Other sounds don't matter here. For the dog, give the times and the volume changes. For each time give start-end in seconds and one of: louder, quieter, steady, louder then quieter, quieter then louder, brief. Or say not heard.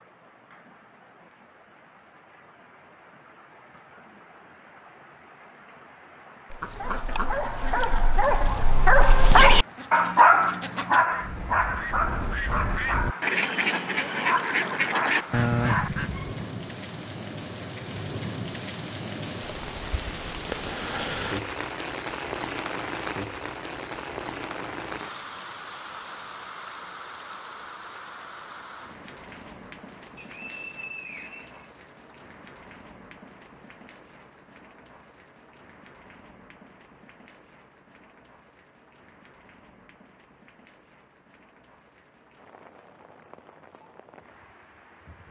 6.5-16.4 louder then quieter.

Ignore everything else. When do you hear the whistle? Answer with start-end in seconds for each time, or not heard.
30.1-32.1.